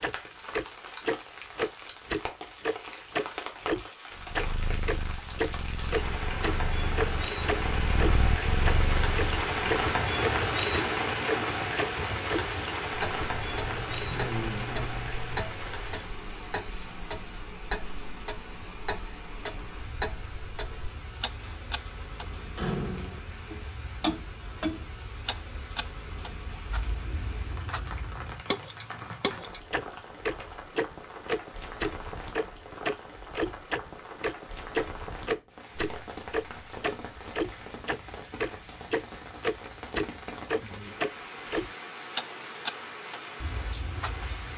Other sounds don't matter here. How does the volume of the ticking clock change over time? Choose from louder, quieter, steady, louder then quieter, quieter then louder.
quieter then louder.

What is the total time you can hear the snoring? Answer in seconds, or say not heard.
2 s.